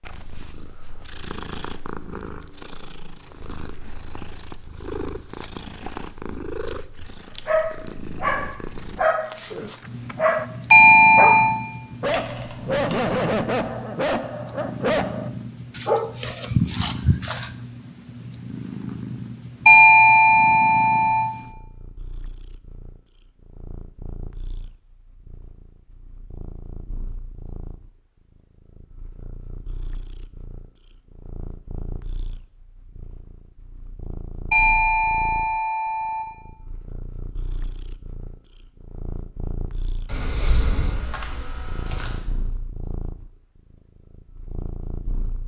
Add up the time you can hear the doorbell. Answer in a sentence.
The doorbell can be heard for 4 seconds in total.